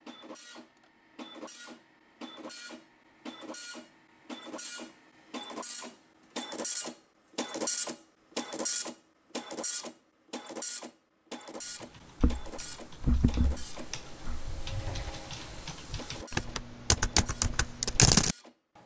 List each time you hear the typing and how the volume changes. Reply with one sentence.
The typing can be heard from 11.8 to 18.4 s, getting quieter then louder.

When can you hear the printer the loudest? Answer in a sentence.
The volume of the printer peaks at 8 seconds.